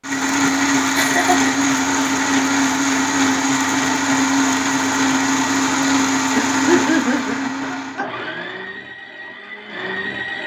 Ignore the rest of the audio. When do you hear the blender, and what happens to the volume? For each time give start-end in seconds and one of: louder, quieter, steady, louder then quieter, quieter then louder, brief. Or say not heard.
0.0-10.4 quieter.